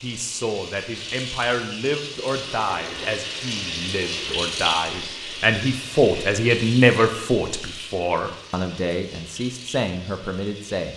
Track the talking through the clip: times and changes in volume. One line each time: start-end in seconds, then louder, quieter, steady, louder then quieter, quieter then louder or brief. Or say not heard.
0.0-10.9 louder then quieter.